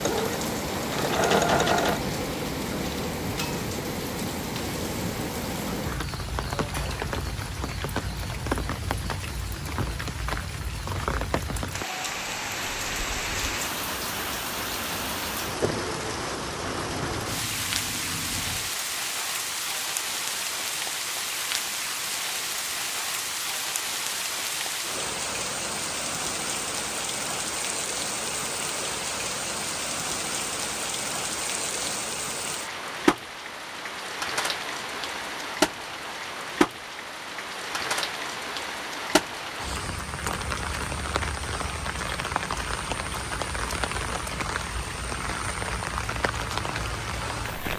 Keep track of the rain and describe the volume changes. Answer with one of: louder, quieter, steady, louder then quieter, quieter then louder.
steady.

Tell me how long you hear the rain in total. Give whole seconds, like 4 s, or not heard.
48 s.